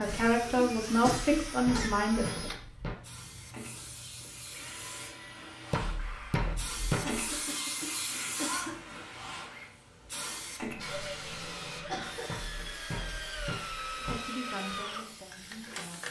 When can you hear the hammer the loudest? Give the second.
7 s.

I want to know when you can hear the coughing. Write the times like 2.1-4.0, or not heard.
0.1-1.9, 7.0-8.8, 11.8-12.7.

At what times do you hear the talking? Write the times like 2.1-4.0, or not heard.
0.0-2.5, 14.0-16.0.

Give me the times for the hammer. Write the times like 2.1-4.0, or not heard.
1.1-3.0, 5.7-7.3, 12.2-14.2.